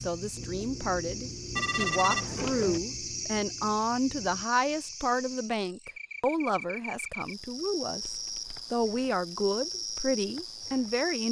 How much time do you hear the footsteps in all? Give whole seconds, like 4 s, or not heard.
not heard.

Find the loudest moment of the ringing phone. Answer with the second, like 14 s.
2 s.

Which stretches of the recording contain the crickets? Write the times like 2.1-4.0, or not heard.
0.0-11.2.